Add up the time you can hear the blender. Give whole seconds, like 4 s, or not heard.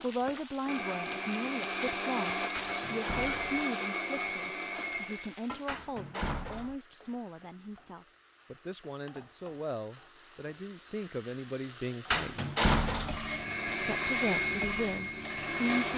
8 s.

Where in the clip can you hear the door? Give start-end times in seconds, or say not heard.
2.5-3.6, 5.7-6.8, 12.1-13.2.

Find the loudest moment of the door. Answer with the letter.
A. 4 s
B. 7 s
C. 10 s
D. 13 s
D.